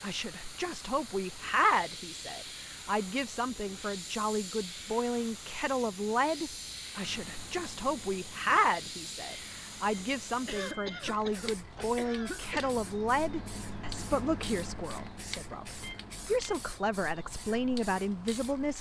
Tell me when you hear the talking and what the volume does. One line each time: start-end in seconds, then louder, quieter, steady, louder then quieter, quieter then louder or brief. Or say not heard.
0.0-18.7 steady.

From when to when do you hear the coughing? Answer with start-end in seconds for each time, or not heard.
10.4-12.8.